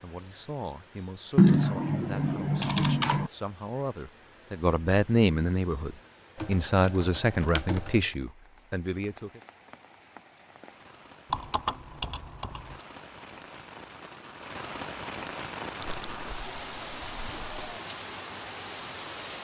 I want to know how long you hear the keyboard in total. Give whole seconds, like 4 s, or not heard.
7 s.